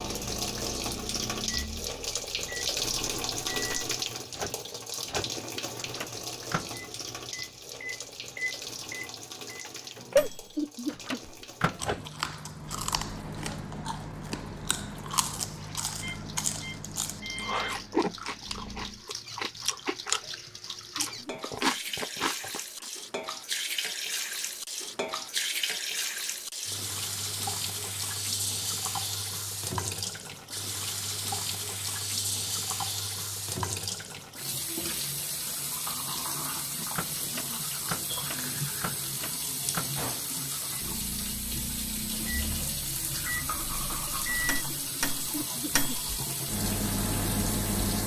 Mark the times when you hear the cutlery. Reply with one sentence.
The cutlery can't be heard in this clip.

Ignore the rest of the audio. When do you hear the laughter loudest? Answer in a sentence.
The loudest moment of the laughter is at 11 seconds.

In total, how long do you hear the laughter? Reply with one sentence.
You can hear the laughter for 2 seconds altogether.